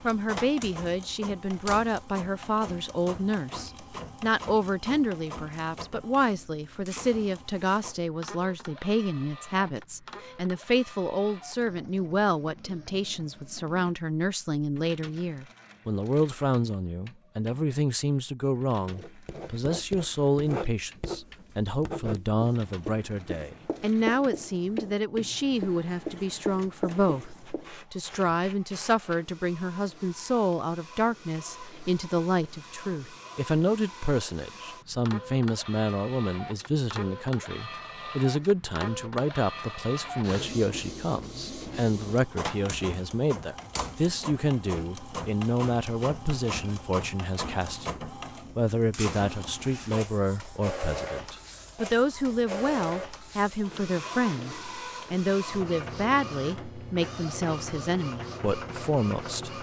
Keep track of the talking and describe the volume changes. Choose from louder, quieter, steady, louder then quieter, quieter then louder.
steady.